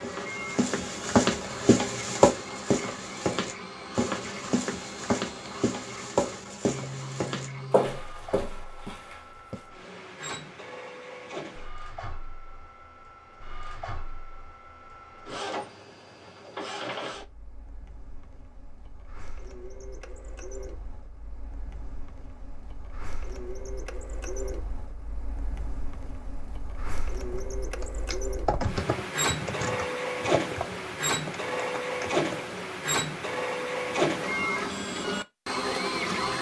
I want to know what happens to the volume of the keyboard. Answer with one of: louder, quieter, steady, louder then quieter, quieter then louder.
quieter.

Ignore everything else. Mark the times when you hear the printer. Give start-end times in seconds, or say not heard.
0.0-36.3.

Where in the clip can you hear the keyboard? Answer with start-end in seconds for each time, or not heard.
27.2-32.6.